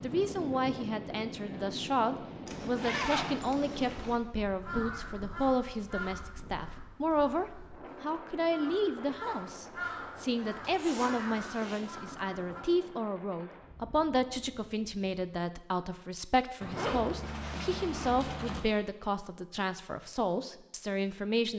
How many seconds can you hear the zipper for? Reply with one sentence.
You can hear the zipper for 5 seconds altogether.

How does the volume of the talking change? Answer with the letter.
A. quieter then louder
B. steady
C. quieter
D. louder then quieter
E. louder
B.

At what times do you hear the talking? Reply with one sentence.
You can hear the talking from 0.0 to 21.5 s.